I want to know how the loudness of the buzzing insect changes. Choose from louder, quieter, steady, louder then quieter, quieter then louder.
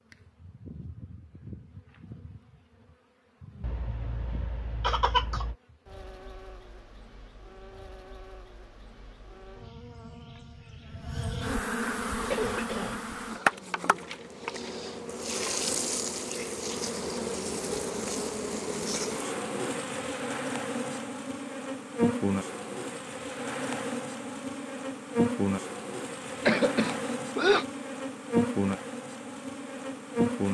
louder.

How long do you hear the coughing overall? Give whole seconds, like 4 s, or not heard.
4 s.